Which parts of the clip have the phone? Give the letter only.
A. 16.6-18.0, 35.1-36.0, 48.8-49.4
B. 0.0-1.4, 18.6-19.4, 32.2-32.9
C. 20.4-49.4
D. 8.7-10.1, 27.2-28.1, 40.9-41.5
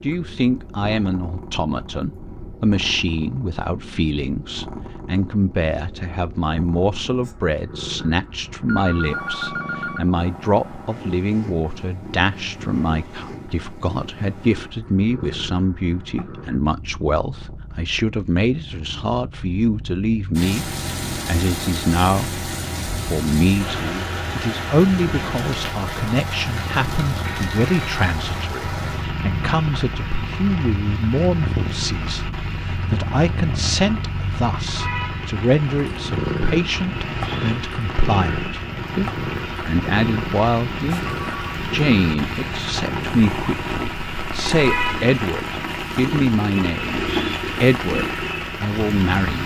D.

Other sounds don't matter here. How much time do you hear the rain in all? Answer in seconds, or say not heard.
29 s.